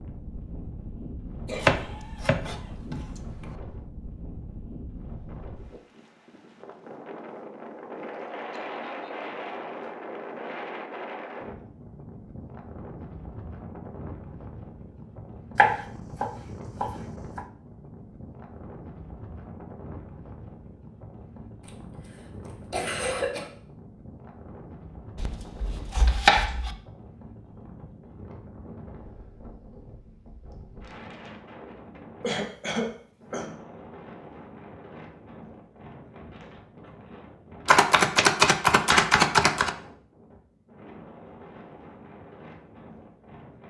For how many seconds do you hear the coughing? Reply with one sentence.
You can hear the coughing for 5 seconds altogether.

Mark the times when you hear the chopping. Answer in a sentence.
The chopping can be heard from 1.6 to 3.0 s, from 15.6 to 17.4 s, from 25.1 to 26.7 s and from 37.6 to 39.7 s.